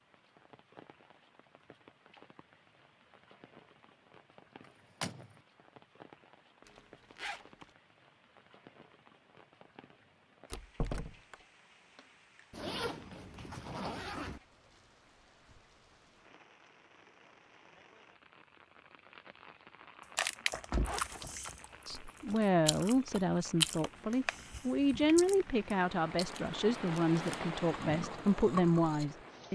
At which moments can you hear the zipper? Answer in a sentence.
The zipper can be heard from 6.7 to 7.7 s, from 12.5 to 14.4 s and from 20.8 to 22.4 s.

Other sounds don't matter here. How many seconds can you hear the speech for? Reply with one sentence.
The speech can be heard for 8 seconds in total.